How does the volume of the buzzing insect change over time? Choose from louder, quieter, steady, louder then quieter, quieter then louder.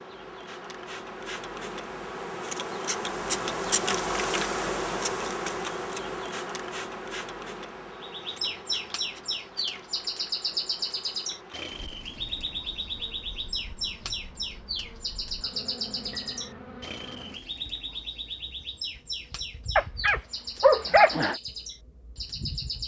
quieter.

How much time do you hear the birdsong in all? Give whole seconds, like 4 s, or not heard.
15 s.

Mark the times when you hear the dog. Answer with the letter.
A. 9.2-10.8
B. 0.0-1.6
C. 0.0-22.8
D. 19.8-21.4
D.